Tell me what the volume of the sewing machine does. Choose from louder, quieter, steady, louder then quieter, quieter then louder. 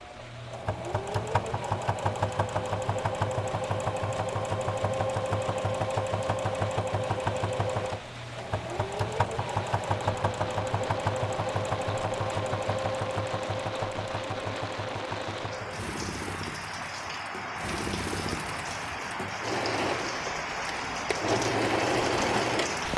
quieter then louder.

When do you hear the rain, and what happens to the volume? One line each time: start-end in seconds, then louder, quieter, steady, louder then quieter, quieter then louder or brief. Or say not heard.
0.0-22.9 louder.